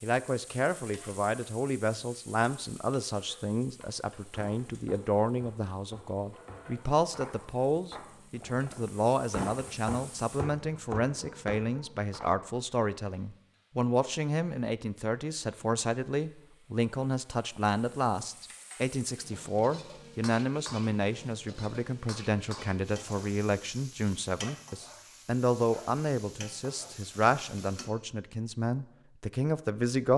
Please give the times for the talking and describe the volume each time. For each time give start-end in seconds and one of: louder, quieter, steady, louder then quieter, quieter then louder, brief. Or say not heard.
0.0-30.1 steady.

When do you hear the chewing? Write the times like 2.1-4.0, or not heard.
not heard.